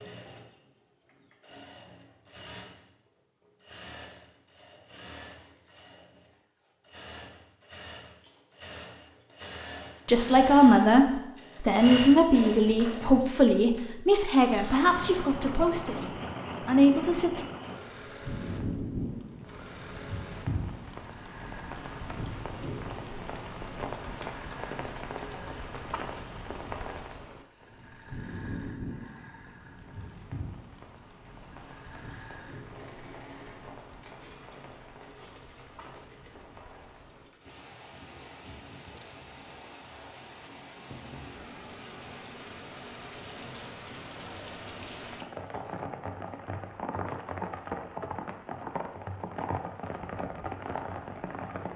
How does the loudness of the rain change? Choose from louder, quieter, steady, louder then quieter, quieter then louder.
quieter then louder.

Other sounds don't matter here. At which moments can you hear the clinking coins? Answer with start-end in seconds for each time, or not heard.
38.8-39.2.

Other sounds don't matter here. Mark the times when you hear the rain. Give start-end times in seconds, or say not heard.
14.8-51.7.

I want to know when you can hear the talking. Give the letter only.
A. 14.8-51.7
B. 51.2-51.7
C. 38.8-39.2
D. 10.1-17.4
D.